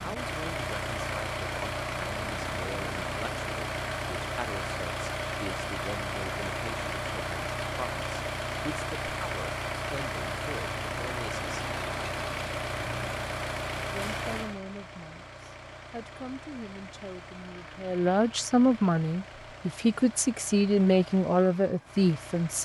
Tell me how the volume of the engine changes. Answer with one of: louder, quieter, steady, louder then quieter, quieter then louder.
quieter.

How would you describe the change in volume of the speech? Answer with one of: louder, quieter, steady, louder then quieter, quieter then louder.
louder.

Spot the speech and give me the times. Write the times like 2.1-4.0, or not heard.
0.0-11.6, 13.9-22.5.